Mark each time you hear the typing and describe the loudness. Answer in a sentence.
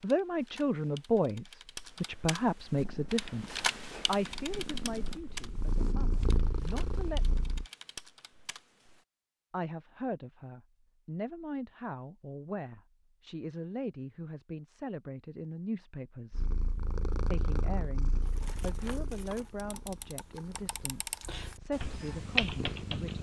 You can hear the typing from 0.0 to 9.1 s, getting louder then quieter; and from 18.2 to 23.1 s, getting louder.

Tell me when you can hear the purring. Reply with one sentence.
The purring can be heard from 2.8 to 7.7 s and from 16.3 to 23.1 s.